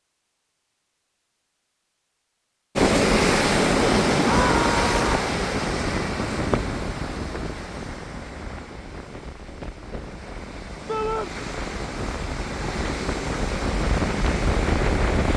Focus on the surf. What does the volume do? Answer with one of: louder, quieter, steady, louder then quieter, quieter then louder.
quieter then louder.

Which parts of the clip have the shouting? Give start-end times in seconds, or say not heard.
4.2-5.0, 10.8-11.3.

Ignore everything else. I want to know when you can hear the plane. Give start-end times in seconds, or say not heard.
not heard.